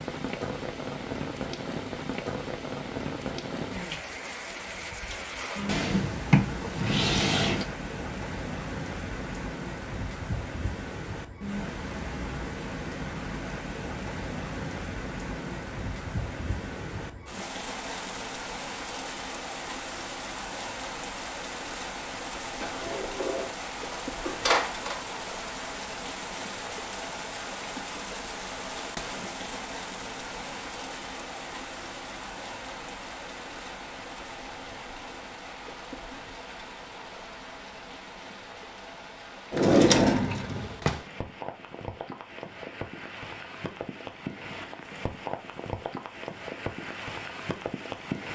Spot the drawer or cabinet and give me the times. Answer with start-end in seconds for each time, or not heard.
5.7-7.7, 22.6-25.0, 39.5-41.0.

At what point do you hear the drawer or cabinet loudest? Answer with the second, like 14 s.
40 s.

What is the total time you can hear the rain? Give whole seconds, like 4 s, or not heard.
48 s.